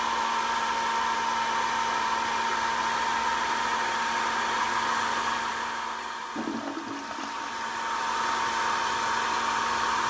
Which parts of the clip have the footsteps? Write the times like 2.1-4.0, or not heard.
not heard.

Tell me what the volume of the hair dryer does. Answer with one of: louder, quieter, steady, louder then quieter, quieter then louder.
quieter then louder.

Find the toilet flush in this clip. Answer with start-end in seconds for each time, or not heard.
6.3-7.7.